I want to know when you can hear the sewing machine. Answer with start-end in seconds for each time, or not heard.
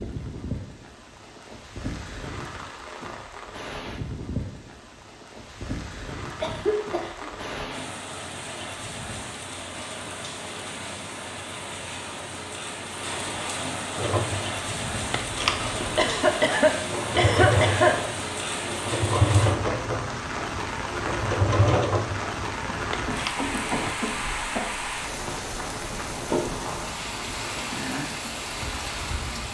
13.9-23.9.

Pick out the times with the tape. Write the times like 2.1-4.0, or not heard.
not heard.